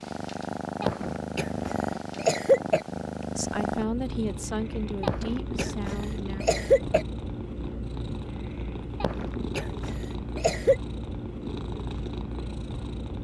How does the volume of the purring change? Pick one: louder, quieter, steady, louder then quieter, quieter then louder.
steady.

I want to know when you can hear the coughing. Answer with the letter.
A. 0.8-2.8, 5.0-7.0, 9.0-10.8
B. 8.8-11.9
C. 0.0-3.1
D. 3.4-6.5
A.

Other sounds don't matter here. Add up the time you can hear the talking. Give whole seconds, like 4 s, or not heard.
3 s.